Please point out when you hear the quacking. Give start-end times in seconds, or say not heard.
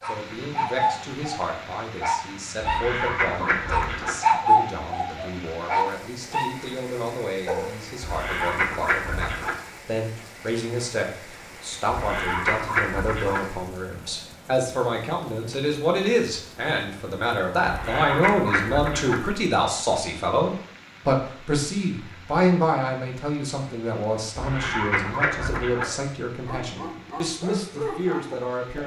2.6-4.2, 8.0-9.6, 11.9-13.4, 17.6-19.1, 24.4-25.9.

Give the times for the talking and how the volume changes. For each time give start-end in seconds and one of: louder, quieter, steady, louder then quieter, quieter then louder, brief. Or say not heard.
0.1-28.8 louder then quieter.